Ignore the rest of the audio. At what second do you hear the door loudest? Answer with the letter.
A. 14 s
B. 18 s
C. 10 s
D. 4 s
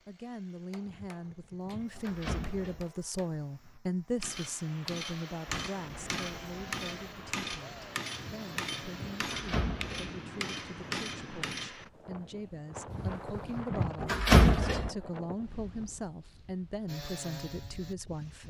A.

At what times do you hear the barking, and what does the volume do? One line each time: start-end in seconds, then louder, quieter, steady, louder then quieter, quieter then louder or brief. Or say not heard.
not heard.